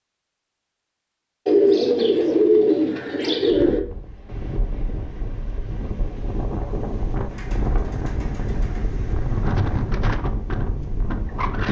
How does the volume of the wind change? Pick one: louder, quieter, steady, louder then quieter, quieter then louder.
louder.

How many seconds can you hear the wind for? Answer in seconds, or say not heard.
8 s.